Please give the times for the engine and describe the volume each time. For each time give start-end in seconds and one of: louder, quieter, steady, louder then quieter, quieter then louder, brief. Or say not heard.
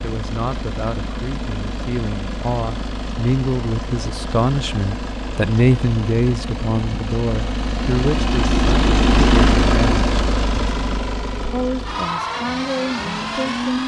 0.0-13.8 louder then quieter.